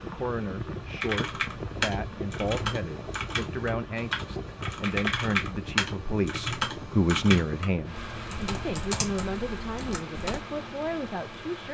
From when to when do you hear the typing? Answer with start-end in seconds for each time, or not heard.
1.0-10.4.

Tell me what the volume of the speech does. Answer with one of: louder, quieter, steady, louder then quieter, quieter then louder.
louder then quieter.